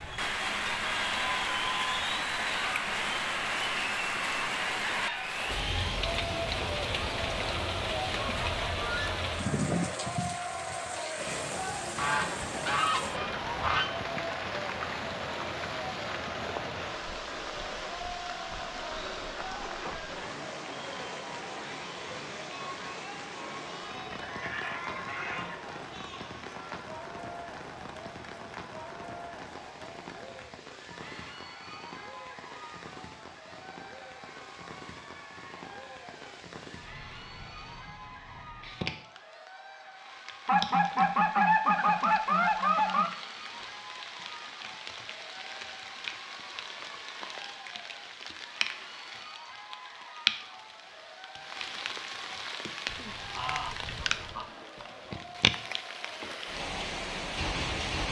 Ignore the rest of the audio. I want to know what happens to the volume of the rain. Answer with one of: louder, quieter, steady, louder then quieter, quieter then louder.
quieter then louder.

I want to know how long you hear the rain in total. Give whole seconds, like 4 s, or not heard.
58 s.